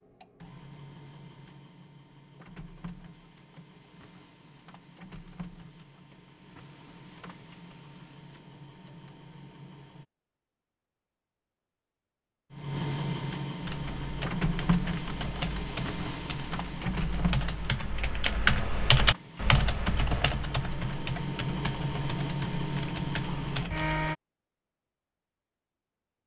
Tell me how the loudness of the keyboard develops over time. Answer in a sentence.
The volume of the keyboard goes up, then down.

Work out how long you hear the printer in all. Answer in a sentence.
The printer can be heard for 22 seconds in total.